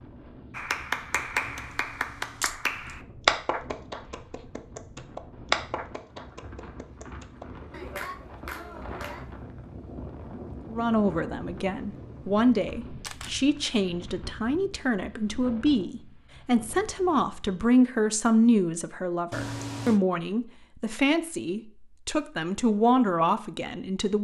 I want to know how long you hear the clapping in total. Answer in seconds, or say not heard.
9 s.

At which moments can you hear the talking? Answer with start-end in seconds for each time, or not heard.
10.7-24.1.